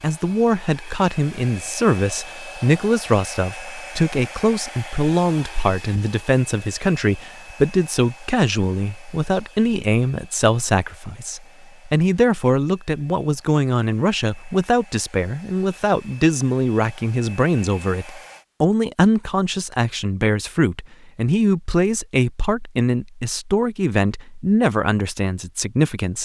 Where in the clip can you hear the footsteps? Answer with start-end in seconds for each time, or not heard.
not heard.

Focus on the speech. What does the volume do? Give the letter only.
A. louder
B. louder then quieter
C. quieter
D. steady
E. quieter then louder
D.